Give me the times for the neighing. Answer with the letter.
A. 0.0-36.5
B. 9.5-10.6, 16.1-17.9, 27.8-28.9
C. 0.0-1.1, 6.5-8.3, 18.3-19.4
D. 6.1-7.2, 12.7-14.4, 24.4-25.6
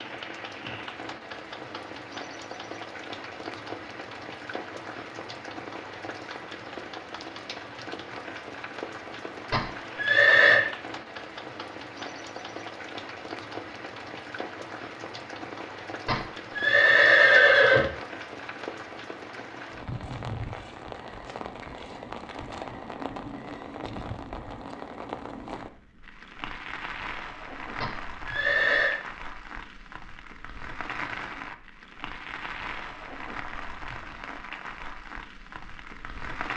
B.